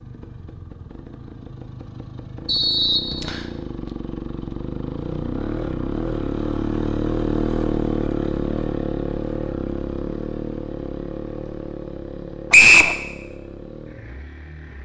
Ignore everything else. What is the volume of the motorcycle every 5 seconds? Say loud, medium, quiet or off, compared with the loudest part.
medium, loud, medium.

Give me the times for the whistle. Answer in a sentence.
You can hear the whistle from 2.5 to 3.5 s and from 12.5 to 12.9 s.